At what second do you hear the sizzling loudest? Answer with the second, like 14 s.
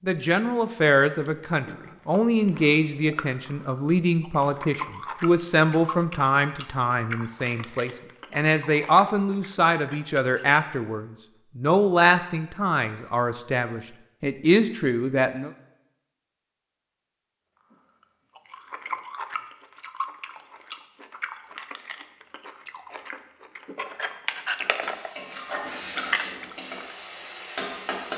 28 s.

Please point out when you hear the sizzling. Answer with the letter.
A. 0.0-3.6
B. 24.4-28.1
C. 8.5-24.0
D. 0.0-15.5
B.